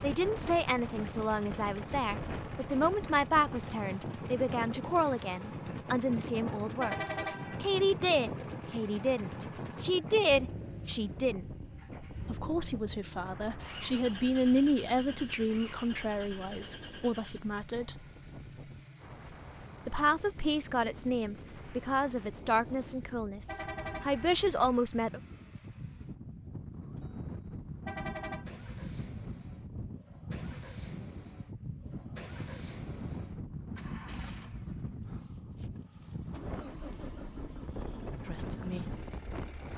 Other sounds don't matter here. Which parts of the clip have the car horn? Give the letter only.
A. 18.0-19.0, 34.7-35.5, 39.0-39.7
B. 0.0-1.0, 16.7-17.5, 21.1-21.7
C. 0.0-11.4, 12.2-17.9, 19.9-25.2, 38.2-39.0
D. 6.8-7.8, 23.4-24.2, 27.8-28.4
D.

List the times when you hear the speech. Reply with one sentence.
The speech can be heard from 0.0 to 11.4 s, from 12.2 to 17.9 s, from 19.9 to 25.2 s and from 38.2 to 39.0 s.